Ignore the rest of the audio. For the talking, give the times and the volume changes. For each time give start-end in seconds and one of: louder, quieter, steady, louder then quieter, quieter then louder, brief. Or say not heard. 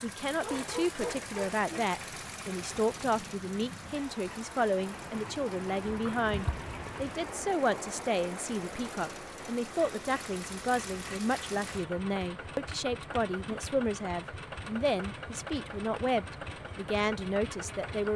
0.0-18.1 steady.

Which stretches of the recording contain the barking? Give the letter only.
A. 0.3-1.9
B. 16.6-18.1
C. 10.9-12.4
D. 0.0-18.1
A.